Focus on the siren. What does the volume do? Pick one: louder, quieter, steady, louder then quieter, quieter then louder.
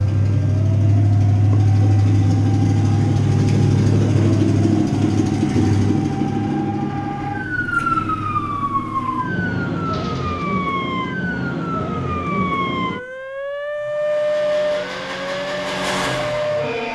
louder.